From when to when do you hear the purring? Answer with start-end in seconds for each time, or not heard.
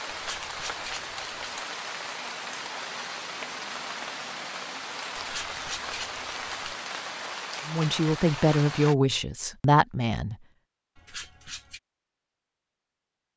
not heard.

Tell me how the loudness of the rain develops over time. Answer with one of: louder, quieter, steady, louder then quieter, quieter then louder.
steady.